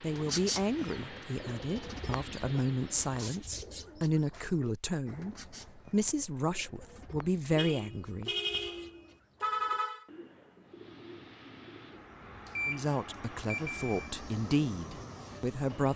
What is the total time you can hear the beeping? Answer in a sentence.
You can hear the beeping for 2 seconds altogether.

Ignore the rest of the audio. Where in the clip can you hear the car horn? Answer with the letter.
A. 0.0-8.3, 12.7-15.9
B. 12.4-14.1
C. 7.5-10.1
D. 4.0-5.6
C.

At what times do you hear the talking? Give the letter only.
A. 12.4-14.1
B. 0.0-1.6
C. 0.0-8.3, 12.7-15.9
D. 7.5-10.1
C.